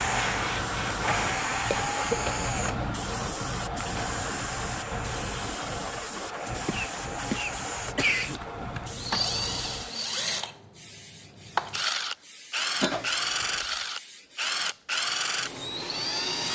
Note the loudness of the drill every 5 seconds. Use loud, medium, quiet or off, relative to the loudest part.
loud, medium, loud, loud.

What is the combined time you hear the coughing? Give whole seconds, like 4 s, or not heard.
3 s.